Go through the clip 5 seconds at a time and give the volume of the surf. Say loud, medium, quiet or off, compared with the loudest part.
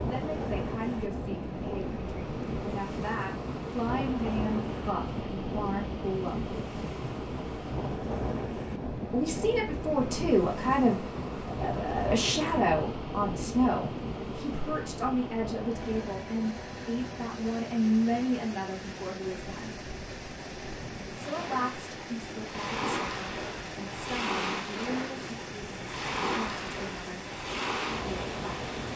loud, loud, loud, medium, loud, loud.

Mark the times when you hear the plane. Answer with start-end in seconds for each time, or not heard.
0.0-28.9.